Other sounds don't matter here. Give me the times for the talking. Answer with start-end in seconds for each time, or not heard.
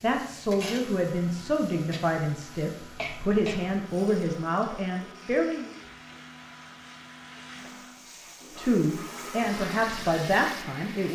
0.0-5.7, 8.6-11.1.